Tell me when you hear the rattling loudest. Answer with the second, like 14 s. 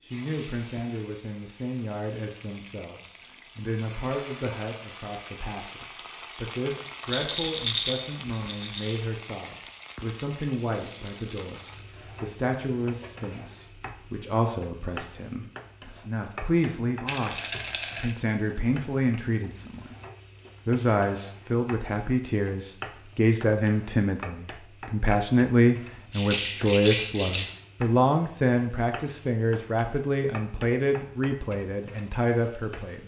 8 s.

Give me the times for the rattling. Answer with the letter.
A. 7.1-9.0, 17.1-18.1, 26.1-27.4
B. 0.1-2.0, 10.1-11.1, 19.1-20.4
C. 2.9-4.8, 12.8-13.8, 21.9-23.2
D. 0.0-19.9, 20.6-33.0
A.